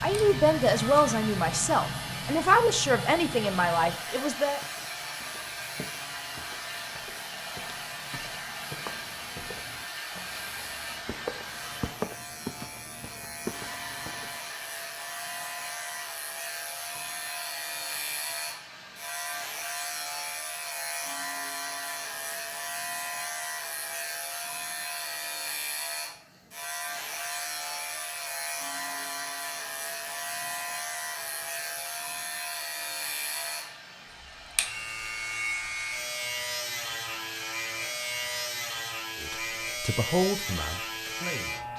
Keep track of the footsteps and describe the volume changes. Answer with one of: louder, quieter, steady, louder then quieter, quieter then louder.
louder.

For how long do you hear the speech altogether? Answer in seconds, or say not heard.
7 s.